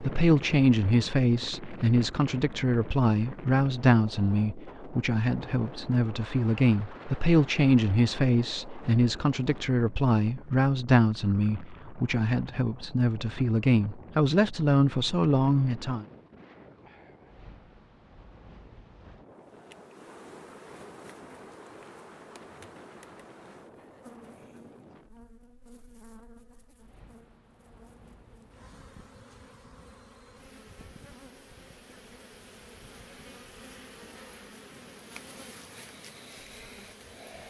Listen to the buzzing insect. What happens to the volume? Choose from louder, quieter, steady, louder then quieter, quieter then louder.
quieter then louder.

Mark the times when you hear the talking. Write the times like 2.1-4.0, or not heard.
0.0-16.1.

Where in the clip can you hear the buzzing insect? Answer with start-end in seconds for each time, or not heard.
19.4-37.4.